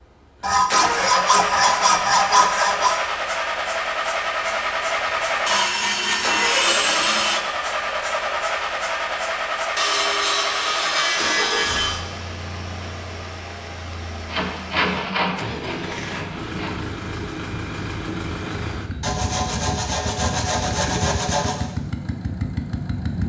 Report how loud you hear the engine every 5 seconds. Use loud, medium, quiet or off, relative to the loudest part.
loud, loud, medium, medium, medium.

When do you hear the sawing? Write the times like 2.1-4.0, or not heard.
0.4-3.0, 5.5-7.4, 9.8-12.0, 14.2-16.8, 19.0-21.6.